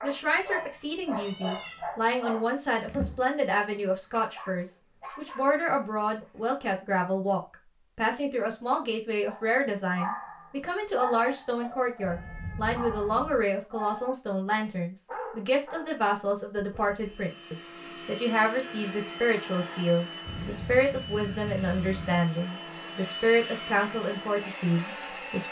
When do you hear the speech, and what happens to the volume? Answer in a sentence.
The speech can be heard from 0.0 to 25.4 s, at a steady volume.